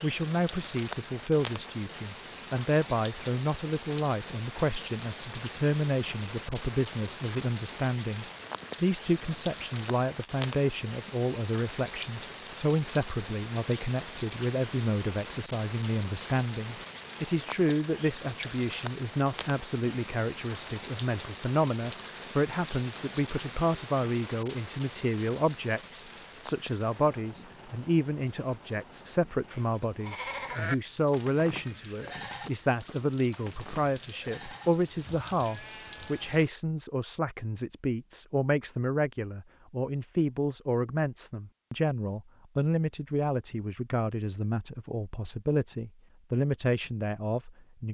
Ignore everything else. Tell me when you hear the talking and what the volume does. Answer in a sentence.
The talking can be heard from 0.0 to 47.8 s, at a steady volume.